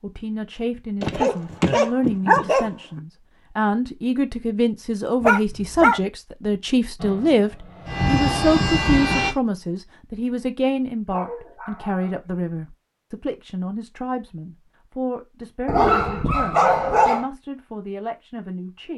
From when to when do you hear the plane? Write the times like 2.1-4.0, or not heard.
7.0-9.3.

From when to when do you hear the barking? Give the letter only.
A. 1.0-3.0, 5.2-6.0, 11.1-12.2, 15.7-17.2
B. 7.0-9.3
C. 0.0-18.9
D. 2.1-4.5
A.